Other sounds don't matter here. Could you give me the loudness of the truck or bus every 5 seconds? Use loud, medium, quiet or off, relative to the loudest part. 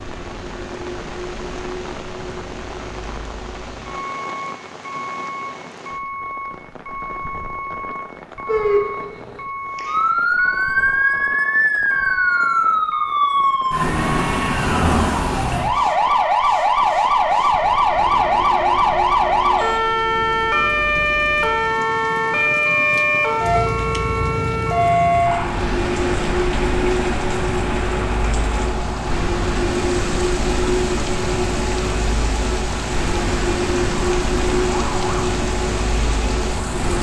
medium, medium, medium, quiet, medium, loud, loud, loud.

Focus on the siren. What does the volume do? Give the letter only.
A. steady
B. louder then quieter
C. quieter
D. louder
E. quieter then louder
C.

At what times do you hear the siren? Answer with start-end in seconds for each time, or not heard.
8.4-36.9.